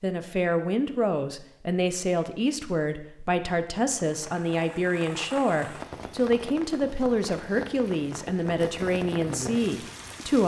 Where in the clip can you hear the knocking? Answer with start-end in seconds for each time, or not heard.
not heard.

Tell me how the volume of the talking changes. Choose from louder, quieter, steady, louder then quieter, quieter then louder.
steady.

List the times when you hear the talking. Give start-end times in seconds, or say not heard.
0.0-10.4.